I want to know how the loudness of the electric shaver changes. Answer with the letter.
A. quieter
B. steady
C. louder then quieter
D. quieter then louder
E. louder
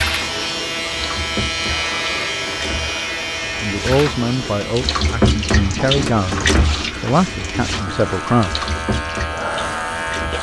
D.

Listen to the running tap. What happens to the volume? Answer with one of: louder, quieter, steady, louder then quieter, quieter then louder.
louder then quieter.